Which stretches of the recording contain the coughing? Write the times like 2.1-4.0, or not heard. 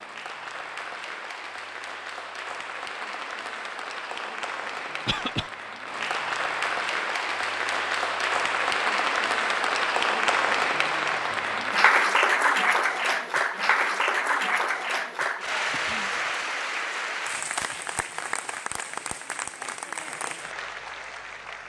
5.0-5.5, 15.7-16.4.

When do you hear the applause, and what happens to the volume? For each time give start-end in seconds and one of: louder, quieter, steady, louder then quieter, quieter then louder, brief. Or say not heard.
0.0-21.6 louder then quieter.